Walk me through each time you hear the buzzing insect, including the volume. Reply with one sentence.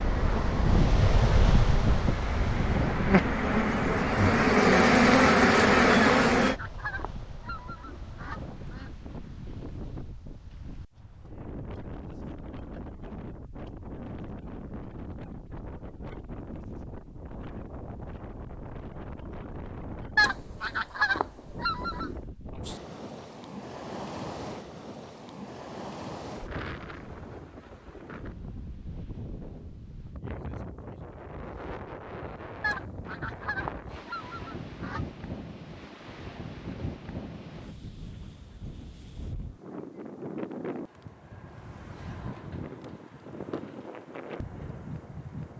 The buzzing insect can be heard from 0.0 to 6.5 s, getting louder.